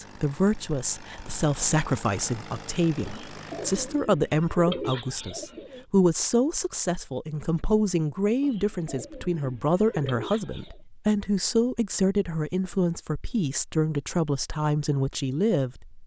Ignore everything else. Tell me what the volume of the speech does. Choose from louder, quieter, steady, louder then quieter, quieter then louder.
steady.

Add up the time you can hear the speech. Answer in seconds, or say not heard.
16 s.